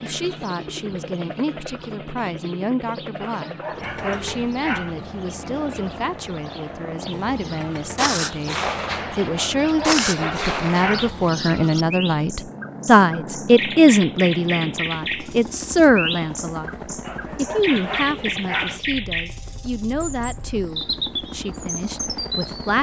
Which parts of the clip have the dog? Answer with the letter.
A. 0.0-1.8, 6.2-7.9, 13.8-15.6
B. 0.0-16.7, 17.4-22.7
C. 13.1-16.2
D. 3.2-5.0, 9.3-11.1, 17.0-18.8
D.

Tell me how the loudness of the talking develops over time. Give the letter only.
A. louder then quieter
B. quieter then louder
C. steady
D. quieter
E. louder
A.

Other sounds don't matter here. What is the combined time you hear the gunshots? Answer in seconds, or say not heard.
3 s.